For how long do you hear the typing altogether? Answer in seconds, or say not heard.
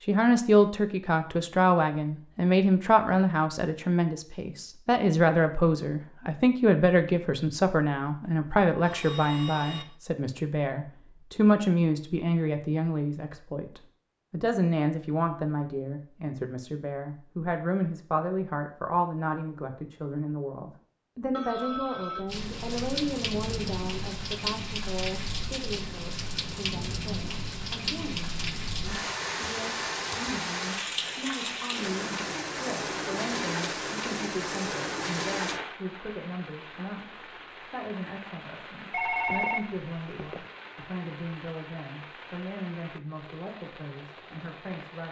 not heard.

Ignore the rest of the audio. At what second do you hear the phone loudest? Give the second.
39 s.